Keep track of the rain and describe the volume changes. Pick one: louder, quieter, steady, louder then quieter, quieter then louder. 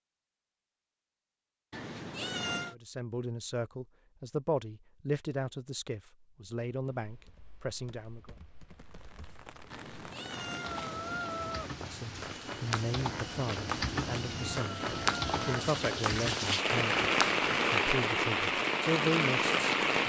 louder.